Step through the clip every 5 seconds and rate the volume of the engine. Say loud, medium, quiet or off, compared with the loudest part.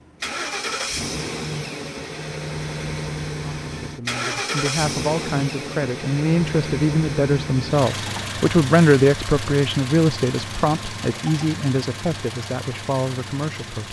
loud, loud, medium.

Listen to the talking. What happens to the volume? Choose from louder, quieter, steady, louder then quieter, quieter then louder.
louder then quieter.